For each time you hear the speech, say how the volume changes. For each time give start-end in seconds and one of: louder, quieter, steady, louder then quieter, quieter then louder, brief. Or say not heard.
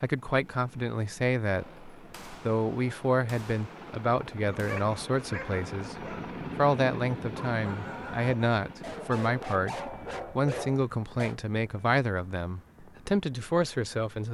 0.0-14.2 steady.